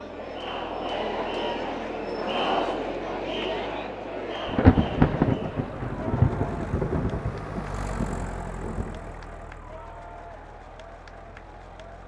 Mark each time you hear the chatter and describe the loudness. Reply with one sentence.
The chatter can be heard from 0.0 to 12.0 s, getting quieter.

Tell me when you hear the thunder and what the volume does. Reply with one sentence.
You can hear the thunder from 4.5 to 9.0 s, getting quieter.